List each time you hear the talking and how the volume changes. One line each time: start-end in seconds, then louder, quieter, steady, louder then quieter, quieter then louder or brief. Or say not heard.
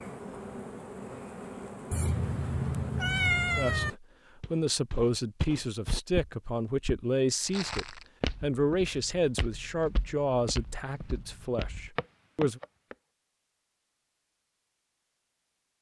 3.5-12.6 quieter.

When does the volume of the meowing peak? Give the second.
3 s.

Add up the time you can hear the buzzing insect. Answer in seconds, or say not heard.
4 s.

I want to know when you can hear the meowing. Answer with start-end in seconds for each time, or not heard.
1.9-3.9.